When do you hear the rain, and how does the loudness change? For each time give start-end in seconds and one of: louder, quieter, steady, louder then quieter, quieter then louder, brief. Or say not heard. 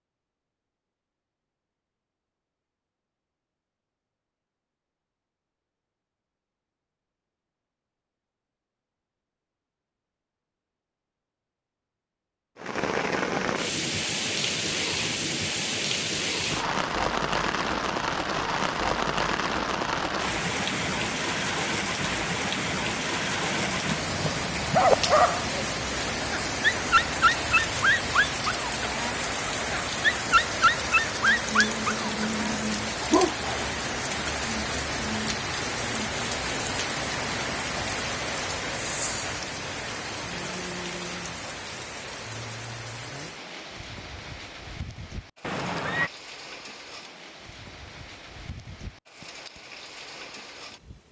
12.6-51.0 quieter.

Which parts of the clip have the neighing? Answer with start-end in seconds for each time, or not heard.
45.4-46.1.